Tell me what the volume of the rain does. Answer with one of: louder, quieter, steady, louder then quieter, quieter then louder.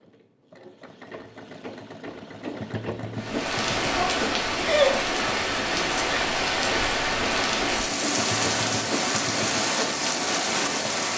steady.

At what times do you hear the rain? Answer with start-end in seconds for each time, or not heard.
3.1-11.1.